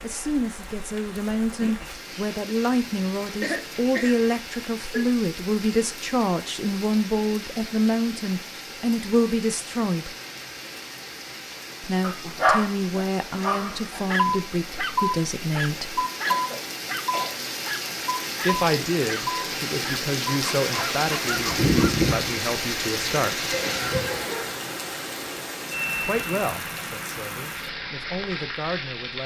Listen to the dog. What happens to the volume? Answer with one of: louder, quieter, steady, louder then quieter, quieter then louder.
quieter.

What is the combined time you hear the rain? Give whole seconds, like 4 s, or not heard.
29 s.